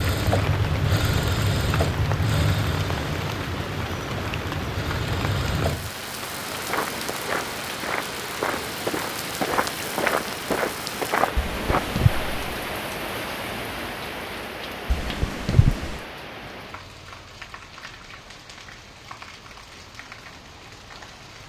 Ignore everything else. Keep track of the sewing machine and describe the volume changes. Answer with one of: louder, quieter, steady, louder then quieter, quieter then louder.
quieter then louder.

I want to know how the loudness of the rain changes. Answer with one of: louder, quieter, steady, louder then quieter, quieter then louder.
quieter.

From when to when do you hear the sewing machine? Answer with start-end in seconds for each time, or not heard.
0.0-6.0.